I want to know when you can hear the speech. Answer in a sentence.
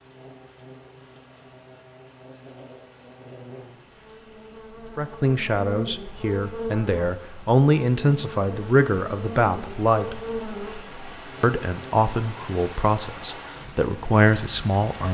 The speech can be heard from 5.0 to 10.2 s and from 11.4 to 15.0 s.